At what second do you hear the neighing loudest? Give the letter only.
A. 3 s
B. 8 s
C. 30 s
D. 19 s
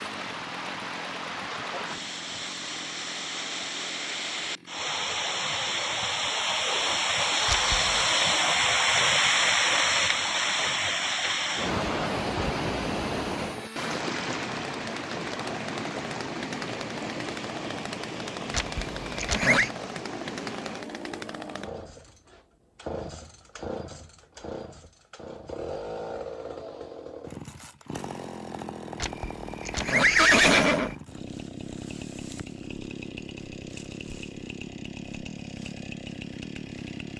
C.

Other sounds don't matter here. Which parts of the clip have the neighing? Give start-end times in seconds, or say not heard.
7.5-8.1, 18.5-19.7, 29.0-30.9.